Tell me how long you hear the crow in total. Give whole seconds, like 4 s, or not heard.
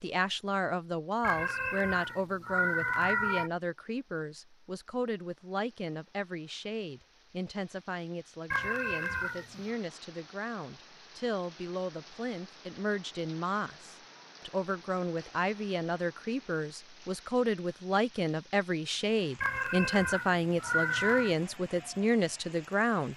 not heard.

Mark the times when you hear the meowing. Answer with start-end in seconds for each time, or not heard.
1.2-3.5, 8.5-9.8, 19.4-21.4.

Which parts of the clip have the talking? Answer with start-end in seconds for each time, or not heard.
0.0-23.1.